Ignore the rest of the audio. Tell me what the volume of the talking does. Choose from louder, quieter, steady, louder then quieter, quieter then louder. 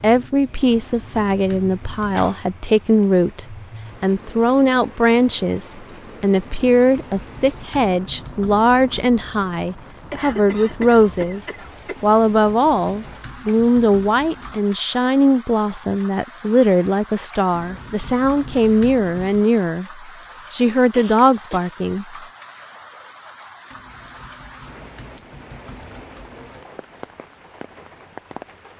steady.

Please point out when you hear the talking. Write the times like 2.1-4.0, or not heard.
0.0-11.4, 12.0-22.1.